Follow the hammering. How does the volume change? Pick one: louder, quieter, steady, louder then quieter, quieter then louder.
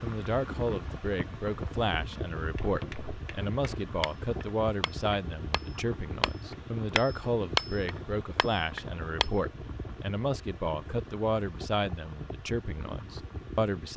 louder then quieter.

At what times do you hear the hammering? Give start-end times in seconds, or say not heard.
2.5-9.3.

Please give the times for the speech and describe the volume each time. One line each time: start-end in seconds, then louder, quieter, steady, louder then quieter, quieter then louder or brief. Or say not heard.
0.0-13.9 steady.